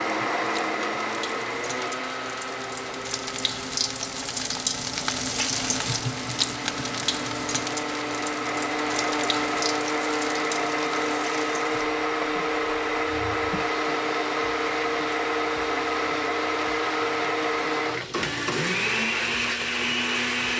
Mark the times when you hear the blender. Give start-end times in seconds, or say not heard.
0.0-20.5.